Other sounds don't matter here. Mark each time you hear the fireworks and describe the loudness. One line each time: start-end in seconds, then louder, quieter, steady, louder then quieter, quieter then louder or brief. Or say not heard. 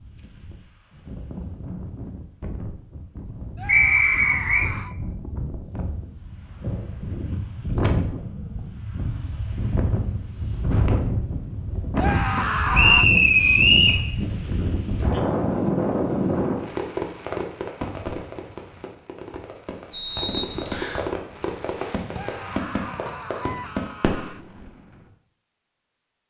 16.6-25.1 quieter then louder.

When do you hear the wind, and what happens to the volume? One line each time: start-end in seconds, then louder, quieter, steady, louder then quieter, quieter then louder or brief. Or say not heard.
0.0-16.7 louder.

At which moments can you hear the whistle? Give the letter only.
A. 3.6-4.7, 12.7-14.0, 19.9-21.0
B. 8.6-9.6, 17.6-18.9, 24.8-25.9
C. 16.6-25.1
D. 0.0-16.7
A.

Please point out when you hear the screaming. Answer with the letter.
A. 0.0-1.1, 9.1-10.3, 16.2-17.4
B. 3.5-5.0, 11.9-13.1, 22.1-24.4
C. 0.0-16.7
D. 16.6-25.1
B.